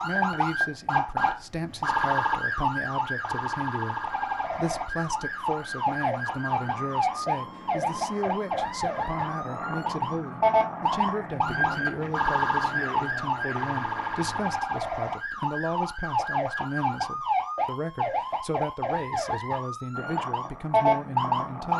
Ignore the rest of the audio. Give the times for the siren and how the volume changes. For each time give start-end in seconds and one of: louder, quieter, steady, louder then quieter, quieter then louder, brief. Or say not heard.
0.0-21.7 steady.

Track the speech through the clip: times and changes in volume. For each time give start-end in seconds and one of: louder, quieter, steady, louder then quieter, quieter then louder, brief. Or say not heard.
0.0-21.7 steady.